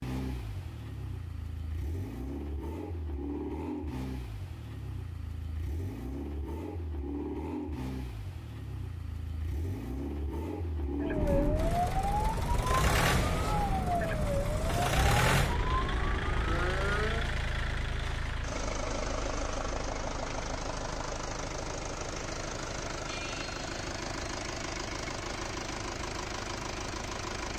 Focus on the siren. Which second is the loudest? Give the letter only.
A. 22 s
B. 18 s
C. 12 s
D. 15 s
C.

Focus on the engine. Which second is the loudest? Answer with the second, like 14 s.
15 s.